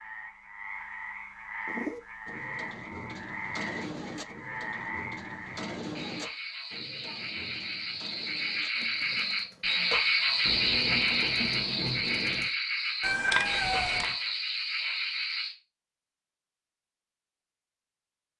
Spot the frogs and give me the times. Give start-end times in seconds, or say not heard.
0.0-15.6.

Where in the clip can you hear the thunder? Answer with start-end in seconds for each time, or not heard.
10.4-12.4.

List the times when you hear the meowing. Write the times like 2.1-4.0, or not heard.
13.0-14.2.